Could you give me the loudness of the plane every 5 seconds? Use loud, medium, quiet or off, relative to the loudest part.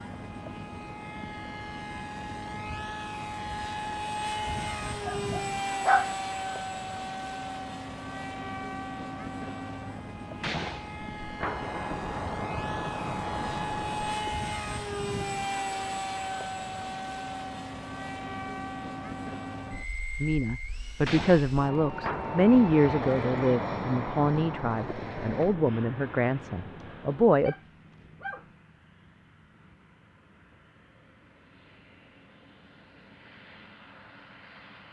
loud, loud, loud, loud, loud, medium, quiet.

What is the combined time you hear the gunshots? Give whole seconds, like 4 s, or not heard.
9 s.